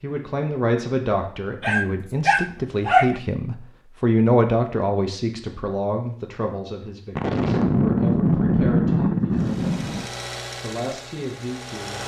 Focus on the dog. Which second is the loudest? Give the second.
3 s.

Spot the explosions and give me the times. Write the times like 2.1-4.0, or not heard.
7.2-10.1.